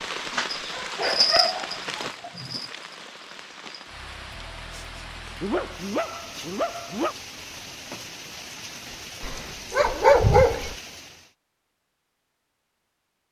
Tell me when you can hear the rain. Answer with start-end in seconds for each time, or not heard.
0.0-11.3.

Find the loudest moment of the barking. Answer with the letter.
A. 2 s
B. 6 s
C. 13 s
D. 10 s
D.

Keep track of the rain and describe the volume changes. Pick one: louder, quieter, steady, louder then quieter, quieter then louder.
quieter.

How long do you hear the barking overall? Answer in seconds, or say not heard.
6 s.